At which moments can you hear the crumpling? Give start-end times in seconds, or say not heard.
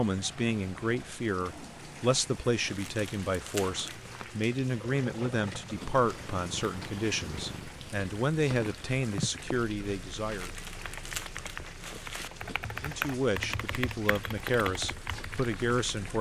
2.7-4.2, 10.3-12.3.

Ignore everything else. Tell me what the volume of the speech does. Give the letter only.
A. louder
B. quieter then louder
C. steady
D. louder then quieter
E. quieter
C.